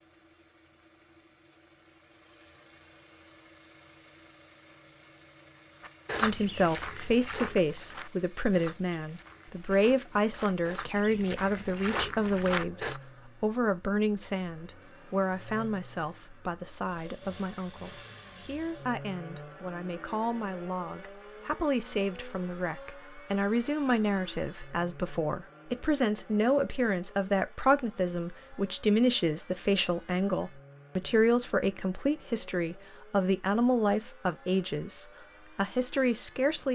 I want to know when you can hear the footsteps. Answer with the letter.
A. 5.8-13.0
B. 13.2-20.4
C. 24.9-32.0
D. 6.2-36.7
A.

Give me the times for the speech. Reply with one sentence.
You can hear the speech from 6.2 to 36.7 s.